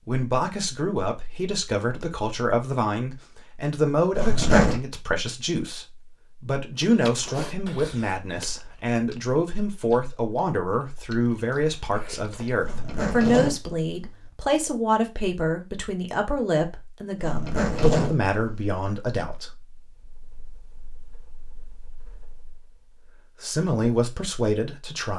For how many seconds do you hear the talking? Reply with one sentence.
The talking can be heard for 25 seconds in total.